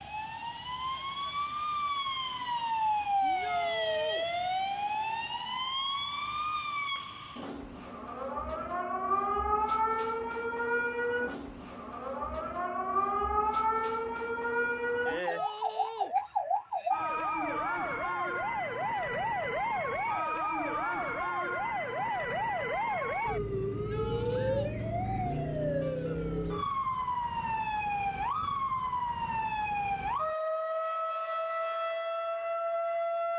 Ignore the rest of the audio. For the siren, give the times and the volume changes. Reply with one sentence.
You can hear the siren from 0.0 to 33.3 s, at a steady volume.